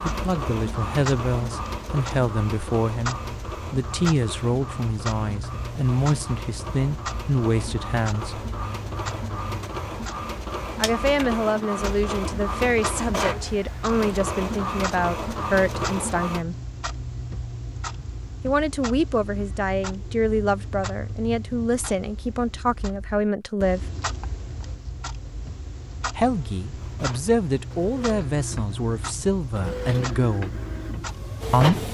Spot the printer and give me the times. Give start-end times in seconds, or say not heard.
0.0-16.4, 26.8-31.8.